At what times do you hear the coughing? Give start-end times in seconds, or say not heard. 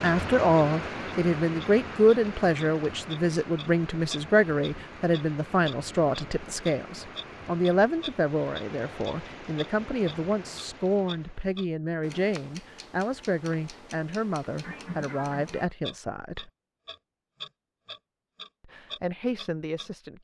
14.6-15.7.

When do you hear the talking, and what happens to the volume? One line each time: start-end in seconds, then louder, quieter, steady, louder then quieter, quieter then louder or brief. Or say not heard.
0.0-16.5 quieter
18.6-20.1 brief.